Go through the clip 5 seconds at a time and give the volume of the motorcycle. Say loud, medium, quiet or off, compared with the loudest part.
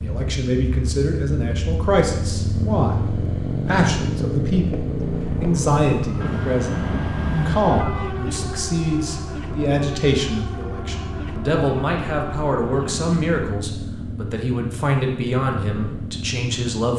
loud, loud, medium, medium.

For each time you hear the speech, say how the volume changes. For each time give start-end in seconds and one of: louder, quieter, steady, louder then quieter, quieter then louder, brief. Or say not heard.
0.0-16.9 steady.